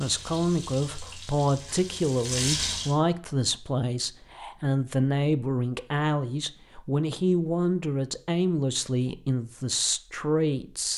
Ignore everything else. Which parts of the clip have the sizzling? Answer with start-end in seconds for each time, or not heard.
0.0-3.0.